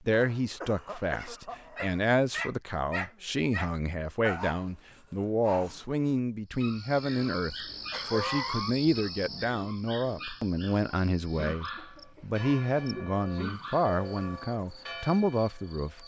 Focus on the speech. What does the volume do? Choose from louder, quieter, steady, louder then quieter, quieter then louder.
steady.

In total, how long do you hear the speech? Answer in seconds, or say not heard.
16 s.